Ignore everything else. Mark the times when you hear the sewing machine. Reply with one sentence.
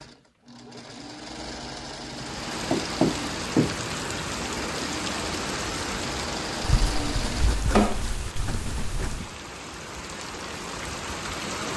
You can hear the sewing machine from 0.0 to 8.1 s.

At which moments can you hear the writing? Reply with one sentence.
The writing can be heard from 2.7 to 4.3 s and from 6.6 to 9.3 s.